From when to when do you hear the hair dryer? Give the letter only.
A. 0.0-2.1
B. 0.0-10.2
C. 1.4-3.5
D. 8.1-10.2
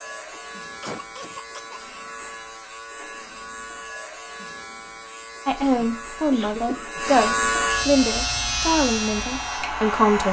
D.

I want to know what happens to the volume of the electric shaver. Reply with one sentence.
The loudness of the electric shaver goes up.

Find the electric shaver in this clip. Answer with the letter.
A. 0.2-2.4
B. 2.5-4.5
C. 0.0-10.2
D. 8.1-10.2
C.